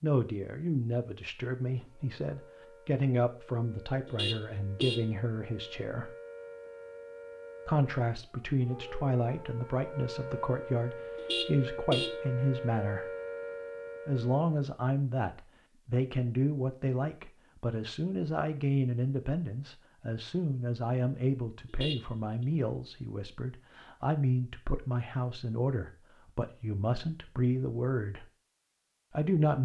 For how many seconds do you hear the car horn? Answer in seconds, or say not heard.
3 s.